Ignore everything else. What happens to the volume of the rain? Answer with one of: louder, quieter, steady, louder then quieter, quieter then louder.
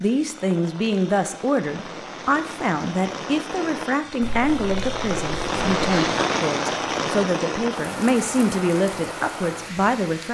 louder then quieter.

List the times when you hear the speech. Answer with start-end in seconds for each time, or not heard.
0.0-10.3.